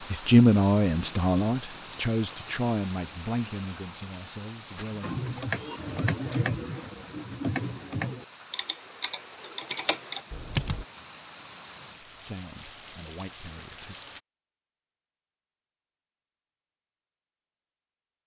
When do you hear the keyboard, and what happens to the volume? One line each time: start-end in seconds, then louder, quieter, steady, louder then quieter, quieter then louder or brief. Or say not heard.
4.8-10.8 quieter then louder.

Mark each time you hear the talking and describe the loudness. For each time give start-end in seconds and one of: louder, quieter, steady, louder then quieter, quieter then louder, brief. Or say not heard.
0.1-5.2 quieter
12.1-13.9 brief.